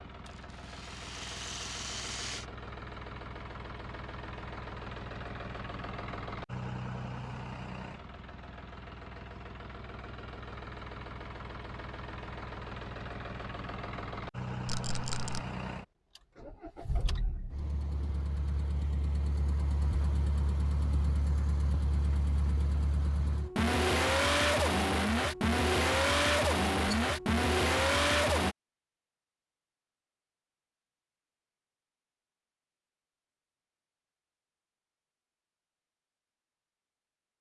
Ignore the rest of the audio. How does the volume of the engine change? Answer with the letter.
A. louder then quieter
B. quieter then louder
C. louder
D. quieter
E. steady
C.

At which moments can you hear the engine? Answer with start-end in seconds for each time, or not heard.
0.0-28.6.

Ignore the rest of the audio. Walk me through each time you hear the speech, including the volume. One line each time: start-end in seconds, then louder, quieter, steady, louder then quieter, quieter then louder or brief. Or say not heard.
not heard.